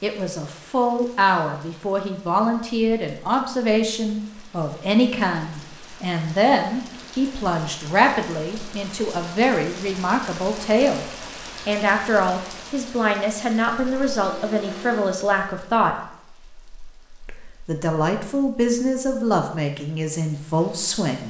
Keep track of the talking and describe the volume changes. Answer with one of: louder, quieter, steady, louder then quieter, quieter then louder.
steady.